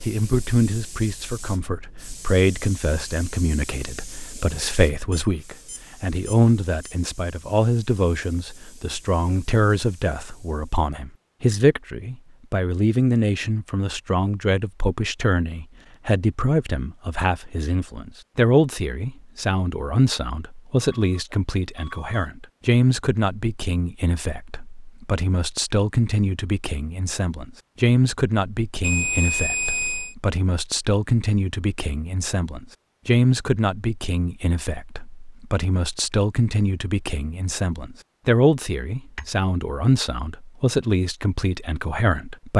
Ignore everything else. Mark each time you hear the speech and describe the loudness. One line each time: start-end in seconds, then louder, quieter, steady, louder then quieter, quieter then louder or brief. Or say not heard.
0.0-42.5 steady.